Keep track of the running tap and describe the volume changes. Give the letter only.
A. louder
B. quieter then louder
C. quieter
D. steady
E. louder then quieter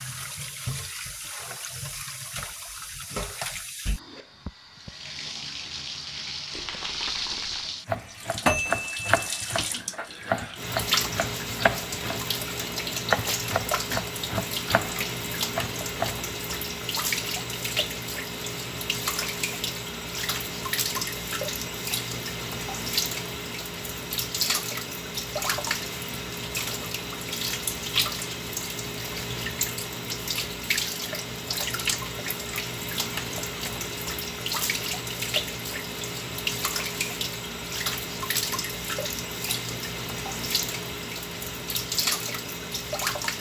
D.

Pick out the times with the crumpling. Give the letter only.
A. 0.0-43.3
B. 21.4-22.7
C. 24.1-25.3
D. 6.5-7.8
D.